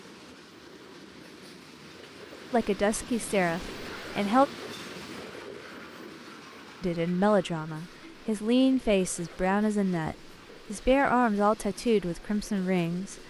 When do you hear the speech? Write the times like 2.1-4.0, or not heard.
2.5-4.5, 6.8-13.2.